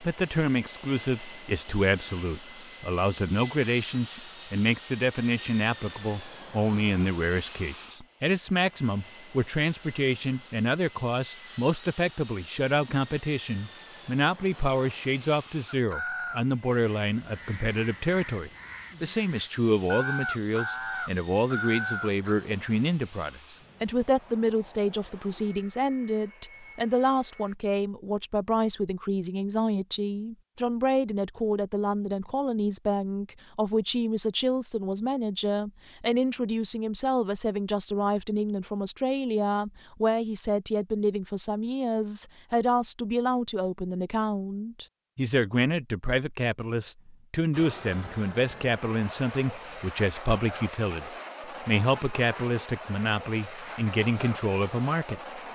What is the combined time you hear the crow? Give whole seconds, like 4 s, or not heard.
7 s.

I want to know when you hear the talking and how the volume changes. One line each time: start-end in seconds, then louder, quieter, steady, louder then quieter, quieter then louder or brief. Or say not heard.
0.0-55.4 steady.